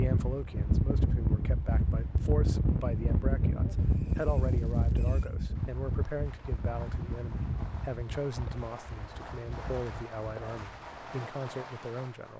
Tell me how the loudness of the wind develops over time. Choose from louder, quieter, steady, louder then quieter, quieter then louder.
quieter.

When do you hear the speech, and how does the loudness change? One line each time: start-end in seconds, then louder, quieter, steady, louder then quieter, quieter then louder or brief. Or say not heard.
0.0-12.3 steady.